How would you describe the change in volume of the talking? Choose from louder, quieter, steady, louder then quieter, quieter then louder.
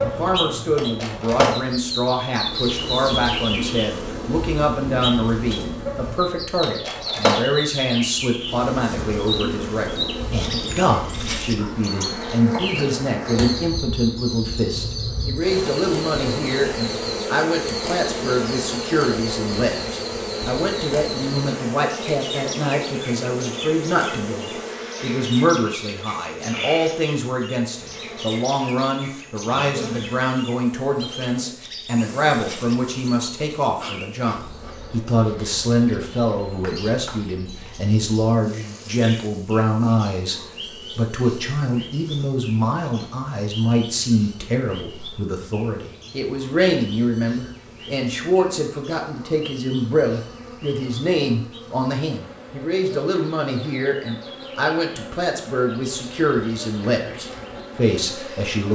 steady.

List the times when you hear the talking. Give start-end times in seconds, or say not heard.
0.0-58.6.